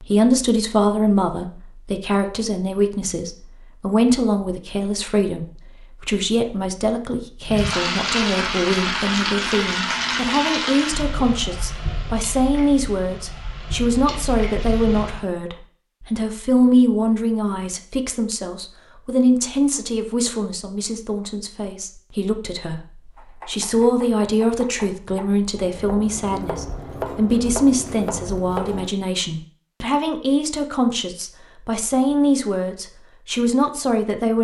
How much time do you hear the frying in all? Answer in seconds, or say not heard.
8 s.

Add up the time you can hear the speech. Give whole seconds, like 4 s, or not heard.
34 s.